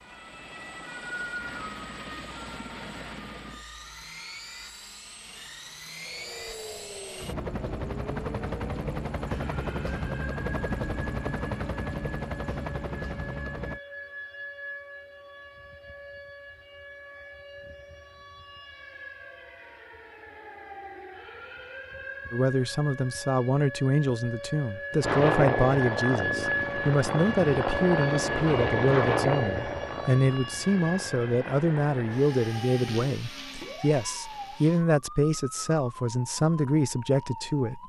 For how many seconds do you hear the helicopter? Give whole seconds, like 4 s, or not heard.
24 s.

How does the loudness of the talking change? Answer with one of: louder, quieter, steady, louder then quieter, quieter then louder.
steady.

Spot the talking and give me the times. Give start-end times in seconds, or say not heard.
22.3-37.8.